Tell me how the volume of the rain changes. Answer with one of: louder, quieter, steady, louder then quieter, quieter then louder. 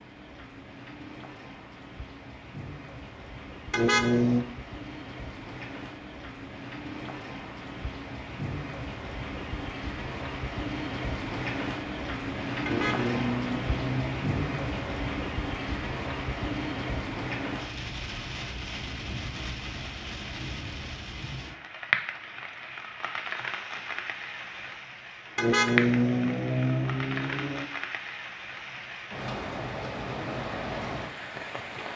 louder.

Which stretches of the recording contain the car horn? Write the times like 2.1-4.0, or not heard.
3.7-4.5, 12.7-15.0, 25.4-27.7.